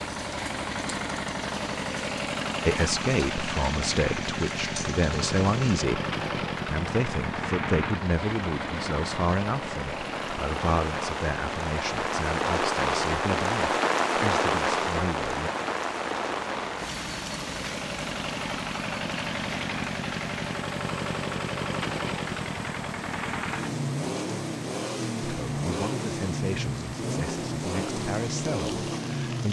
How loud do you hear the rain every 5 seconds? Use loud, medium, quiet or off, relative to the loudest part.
quiet, quiet, loud, medium, quiet, quiet.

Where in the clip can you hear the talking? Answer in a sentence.
The talking can be heard from 2.6 to 15.5 s and from 25.2 to 29.4 s.